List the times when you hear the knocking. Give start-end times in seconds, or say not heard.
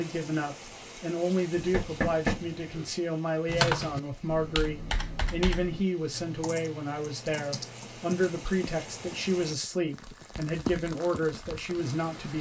1.6-2.9.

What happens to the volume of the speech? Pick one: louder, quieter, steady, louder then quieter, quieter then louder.
steady.